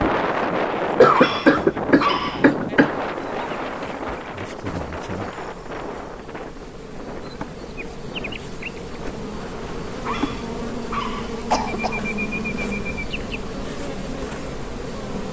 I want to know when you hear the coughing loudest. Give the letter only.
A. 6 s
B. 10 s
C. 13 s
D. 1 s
D.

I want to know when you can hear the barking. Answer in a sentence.
You can hear the barking from 1.1 to 2.5 s and from 10.1 to 11.4 s.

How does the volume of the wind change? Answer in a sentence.
The volume of the wind goes down.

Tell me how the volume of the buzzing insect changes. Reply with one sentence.
The loudness of the buzzing insect goes up.